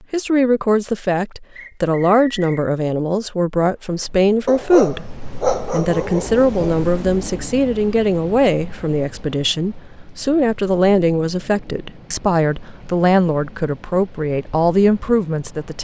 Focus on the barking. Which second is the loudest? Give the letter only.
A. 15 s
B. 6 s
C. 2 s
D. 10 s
B.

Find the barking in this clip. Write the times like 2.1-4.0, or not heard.
4.5-6.8.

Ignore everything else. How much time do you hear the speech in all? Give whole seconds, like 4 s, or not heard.
15 s.